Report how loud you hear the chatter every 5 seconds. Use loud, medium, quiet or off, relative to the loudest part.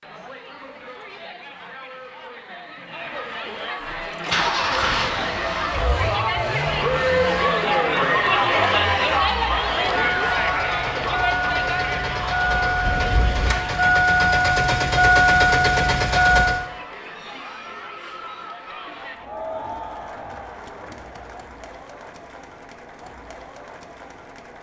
quiet, loud, medium, quiet, quiet.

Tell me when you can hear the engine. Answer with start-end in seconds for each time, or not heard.
3.8-16.6.